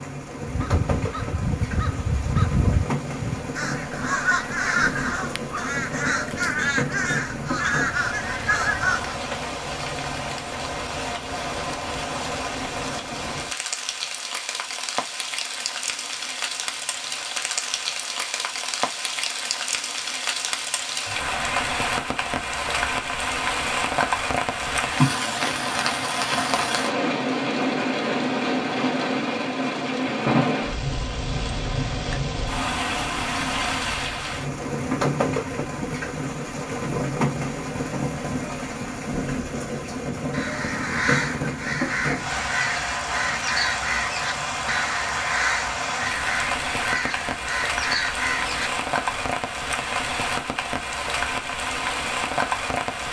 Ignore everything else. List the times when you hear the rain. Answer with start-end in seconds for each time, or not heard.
0.0-53.0.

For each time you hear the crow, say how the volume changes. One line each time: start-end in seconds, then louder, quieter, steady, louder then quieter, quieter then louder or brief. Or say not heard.
0.4-9.3 steady
40.3-49.4 steady.